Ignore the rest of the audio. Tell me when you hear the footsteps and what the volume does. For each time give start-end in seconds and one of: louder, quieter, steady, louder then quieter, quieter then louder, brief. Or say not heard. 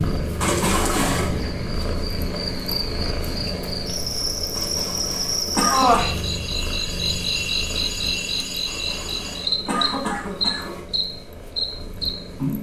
not heard.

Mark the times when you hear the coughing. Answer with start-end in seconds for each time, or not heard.
0.4-1.3, 4.5-6.0, 8.7-10.8.